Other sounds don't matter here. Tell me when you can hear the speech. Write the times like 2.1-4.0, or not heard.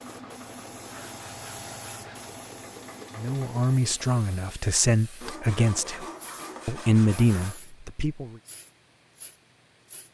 3.1-6.0, 6.7-8.3.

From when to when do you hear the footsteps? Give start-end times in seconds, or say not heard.
not heard.